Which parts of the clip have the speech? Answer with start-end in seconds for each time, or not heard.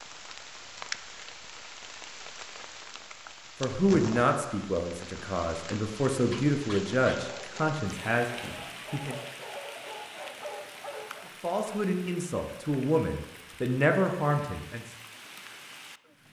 3.6-9.2, 11.4-14.8.